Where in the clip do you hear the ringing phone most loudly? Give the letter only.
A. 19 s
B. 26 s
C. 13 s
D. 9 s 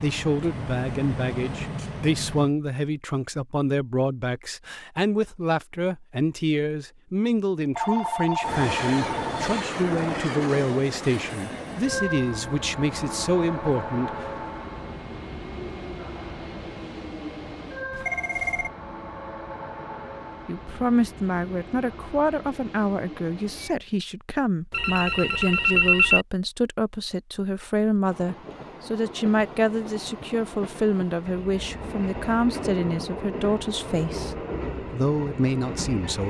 B.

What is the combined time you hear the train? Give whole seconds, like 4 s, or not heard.
26 s.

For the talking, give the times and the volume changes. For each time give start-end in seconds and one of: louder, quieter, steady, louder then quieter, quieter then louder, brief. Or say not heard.
0.0-14.2 steady
20.4-36.2 steady.